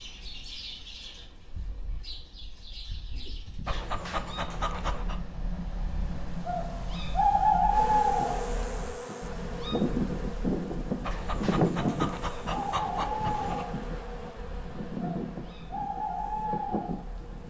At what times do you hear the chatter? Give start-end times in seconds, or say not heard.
not heard.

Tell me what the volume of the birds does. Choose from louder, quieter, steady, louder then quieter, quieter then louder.
louder then quieter.